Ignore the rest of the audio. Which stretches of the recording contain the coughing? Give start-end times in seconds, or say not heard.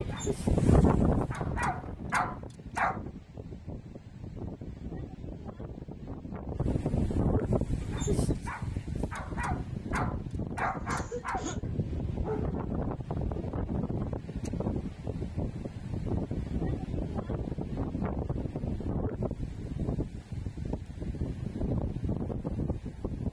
10.7-11.7.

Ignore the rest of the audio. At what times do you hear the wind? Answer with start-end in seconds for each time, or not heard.
0.0-23.2.